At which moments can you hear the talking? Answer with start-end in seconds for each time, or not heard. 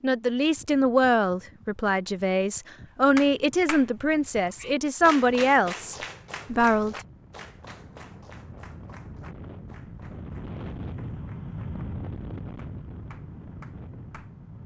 0.0-7.0.